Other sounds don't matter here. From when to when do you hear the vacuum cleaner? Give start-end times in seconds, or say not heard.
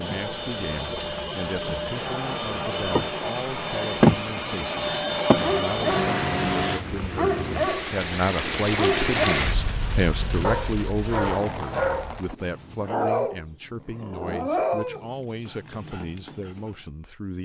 0.0-6.8.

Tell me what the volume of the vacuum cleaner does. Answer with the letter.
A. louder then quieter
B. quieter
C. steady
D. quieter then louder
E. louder
E.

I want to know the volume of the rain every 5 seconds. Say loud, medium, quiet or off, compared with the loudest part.
medium, loud, medium, off.